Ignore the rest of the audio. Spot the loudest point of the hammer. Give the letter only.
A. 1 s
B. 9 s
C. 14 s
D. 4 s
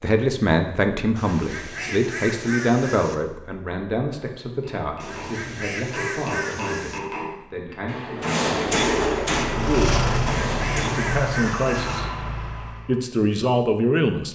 B.